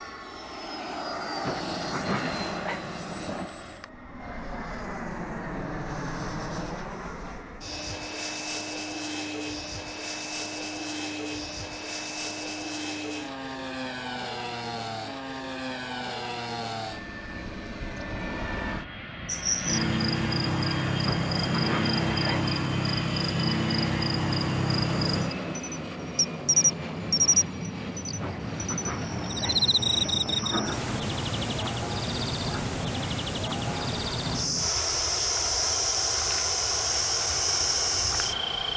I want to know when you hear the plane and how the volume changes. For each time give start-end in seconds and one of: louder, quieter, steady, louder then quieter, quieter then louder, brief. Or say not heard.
0.0-38.7 steady.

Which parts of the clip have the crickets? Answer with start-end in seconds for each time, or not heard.
19.2-38.7.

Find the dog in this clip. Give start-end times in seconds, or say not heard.
1.4-3.5, 21.1-22.6, 28.2-30.9.